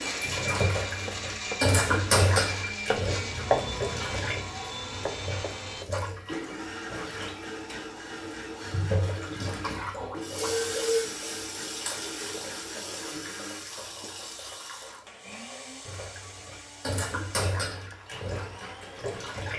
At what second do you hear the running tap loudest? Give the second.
2 s.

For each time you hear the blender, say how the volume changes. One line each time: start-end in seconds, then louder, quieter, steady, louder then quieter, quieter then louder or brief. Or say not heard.
0.0-19.2 quieter.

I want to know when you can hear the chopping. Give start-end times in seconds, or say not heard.
0.9-6.0.